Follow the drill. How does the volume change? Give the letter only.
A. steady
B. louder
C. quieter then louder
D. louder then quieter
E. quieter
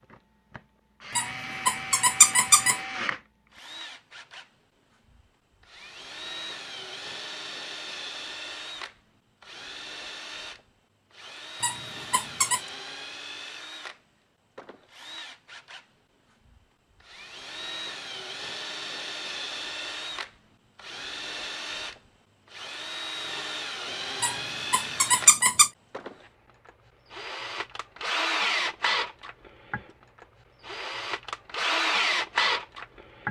B.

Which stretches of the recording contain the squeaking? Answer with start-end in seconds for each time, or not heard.
1.1-2.8, 11.6-12.6, 24.2-25.7.